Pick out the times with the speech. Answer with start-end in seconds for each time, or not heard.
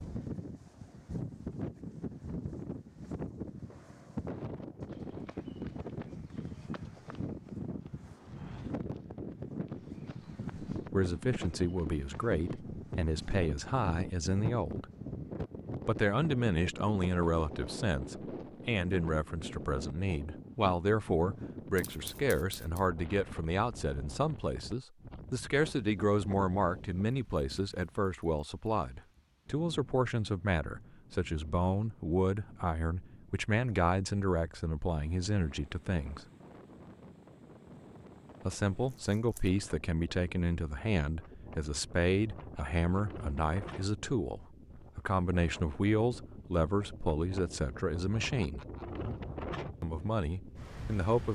10.8-14.8, 15.8-36.2, 38.5-48.6, 49.8-51.2.